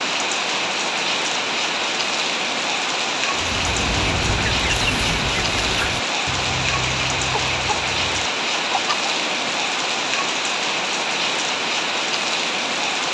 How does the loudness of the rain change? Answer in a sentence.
The loudness of the rain stays about the same.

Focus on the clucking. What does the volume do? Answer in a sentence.
The volume of the clucking goes down.